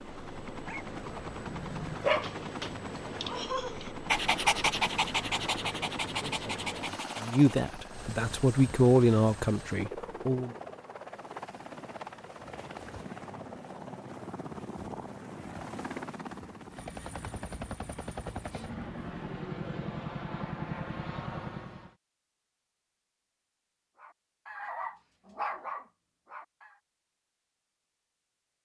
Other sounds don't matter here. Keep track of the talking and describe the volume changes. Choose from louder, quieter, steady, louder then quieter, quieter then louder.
louder then quieter.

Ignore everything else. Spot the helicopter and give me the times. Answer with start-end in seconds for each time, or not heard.
0.0-21.9.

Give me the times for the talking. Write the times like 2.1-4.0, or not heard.
6.2-10.6.